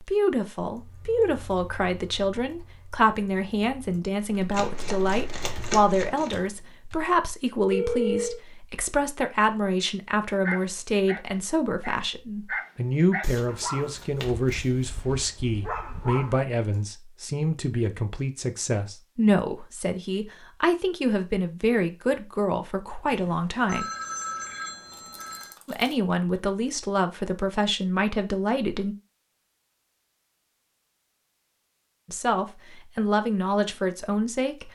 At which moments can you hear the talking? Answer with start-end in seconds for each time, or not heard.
0.0-23.9, 25.6-28.9, 32.0-34.6.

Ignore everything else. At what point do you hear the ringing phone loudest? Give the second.
8 s.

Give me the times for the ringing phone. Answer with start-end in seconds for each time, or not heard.
7.7-8.4, 23.1-25.6.